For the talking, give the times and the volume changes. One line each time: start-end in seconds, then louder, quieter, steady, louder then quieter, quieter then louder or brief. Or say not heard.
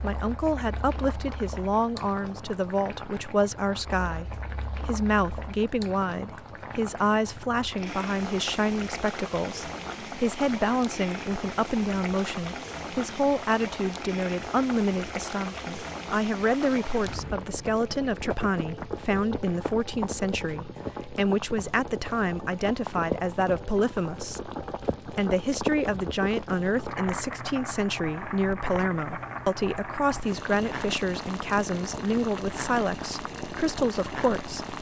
0.0-34.6 steady.